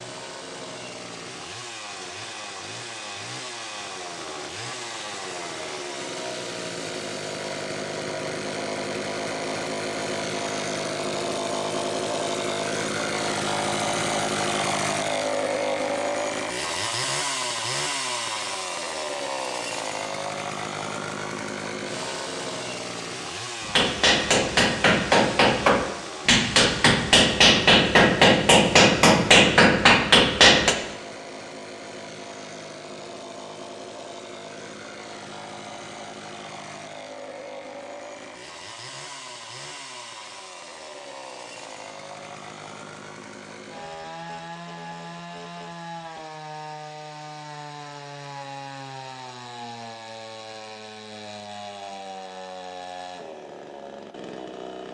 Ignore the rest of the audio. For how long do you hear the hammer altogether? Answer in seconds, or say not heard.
7 s.